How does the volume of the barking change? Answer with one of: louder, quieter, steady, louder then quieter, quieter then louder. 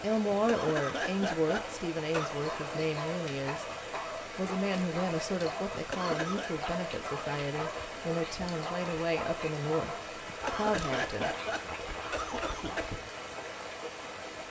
steady.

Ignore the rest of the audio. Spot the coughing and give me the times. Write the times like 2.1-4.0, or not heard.
0.3-2.4, 5.7-6.5, 10.2-12.9.